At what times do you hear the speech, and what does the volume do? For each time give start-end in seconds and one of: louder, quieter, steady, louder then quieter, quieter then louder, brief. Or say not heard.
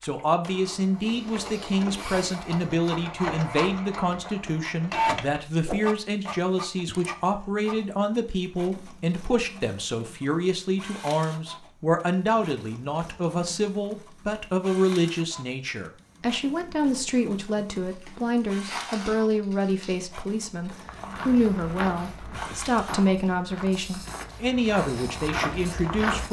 0.0-26.2 steady.